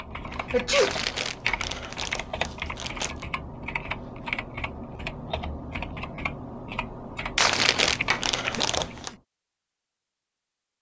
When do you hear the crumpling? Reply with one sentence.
You can hear the crumpling from 0.8 to 3.2 s and from 7.3 to 9.1 s.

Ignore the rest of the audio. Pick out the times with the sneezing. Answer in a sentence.
You can hear the sneezing from 0.3 to 0.9 s and from 8.5 to 9.2 s.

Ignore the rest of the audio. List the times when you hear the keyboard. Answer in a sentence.
The keyboard can be heard from 0.0 to 9.2 s.